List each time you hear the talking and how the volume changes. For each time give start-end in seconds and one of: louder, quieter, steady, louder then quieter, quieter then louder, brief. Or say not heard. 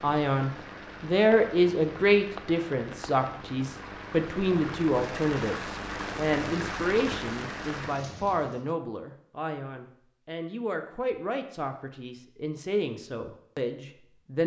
0.0-14.4 quieter.